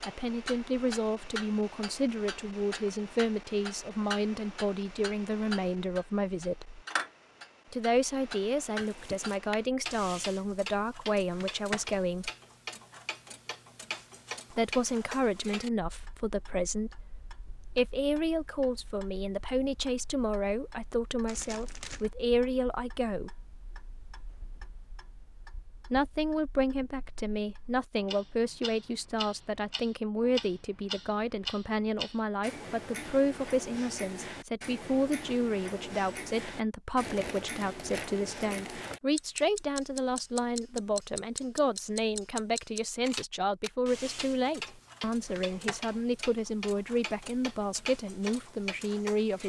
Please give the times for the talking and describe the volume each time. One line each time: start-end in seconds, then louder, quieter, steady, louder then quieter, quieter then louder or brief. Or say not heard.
0.1-6.8 steady
7.7-12.3 steady
14.5-23.4 steady
25.9-49.4 steady.